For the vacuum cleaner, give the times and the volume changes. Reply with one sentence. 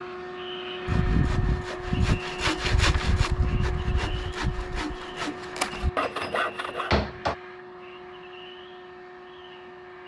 You can hear the vacuum cleaner from 0.0 to 10.0 s, getting quieter.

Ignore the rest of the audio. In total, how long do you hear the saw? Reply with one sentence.
You can hear the saw for 6 seconds altogether.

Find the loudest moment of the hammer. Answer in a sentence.
The volume of the hammer peaks at 7 seconds.